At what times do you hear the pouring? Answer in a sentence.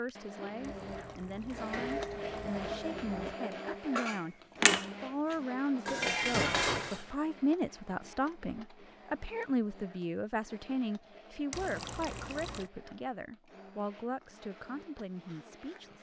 You can hear the pouring from 0.6 to 2.6 s and from 11.5 to 12.7 s.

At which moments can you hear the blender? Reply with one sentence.
The blender can be heard from 0.0 to 15.9 s.